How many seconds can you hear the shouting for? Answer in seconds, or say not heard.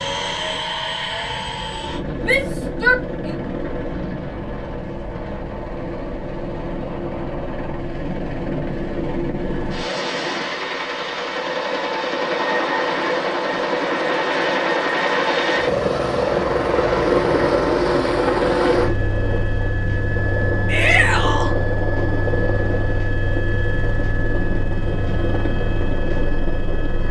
2 s.